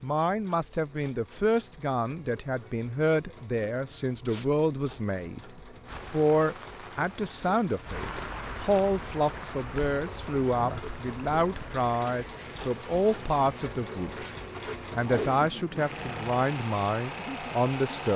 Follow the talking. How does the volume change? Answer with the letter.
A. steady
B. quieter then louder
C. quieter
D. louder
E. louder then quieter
A.